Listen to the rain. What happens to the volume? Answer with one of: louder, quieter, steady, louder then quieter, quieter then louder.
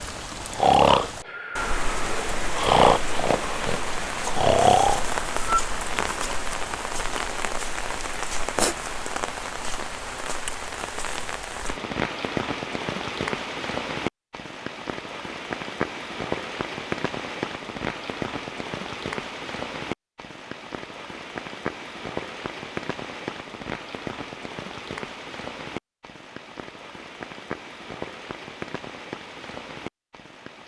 quieter.